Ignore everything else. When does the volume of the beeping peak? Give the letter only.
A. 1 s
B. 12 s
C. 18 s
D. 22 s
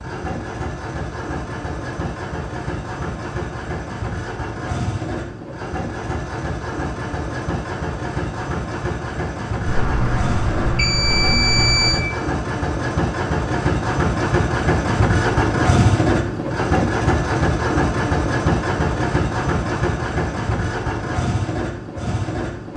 B.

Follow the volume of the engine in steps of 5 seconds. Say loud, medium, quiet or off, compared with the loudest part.
medium, medium, loud, loud, medium.